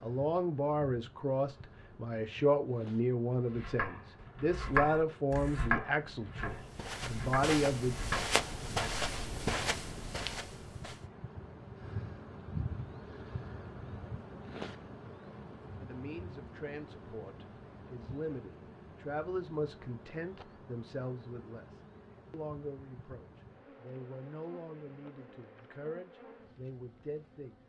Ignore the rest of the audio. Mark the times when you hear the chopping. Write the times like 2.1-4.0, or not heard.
3.3-8.3.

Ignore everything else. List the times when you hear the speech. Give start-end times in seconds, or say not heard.
0.0-8.0, 15.8-27.6.